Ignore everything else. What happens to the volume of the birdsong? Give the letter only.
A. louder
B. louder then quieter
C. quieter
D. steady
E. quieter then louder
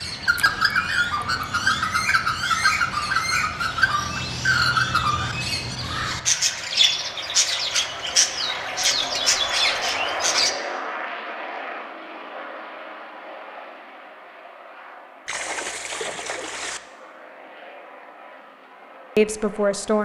D.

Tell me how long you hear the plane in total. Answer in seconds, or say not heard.
20 s.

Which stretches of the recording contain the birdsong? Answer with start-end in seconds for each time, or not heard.
0.0-10.6.